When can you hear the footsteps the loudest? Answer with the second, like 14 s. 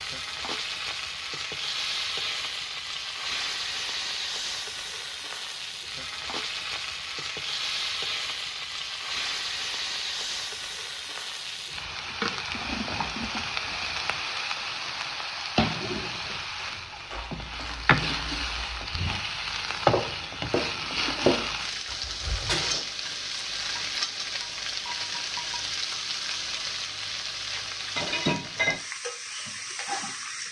21 s.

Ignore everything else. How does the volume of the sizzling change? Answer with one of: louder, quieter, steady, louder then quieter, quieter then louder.
steady.